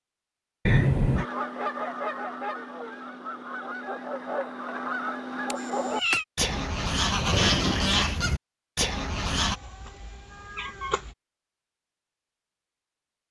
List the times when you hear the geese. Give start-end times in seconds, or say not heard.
1.1-9.6.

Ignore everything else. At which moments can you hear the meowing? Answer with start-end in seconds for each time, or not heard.
0.7-1.2, 5.5-6.2, 9.3-11.2.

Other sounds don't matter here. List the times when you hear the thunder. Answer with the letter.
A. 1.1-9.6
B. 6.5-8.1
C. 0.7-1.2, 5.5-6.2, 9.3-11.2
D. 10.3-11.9
B.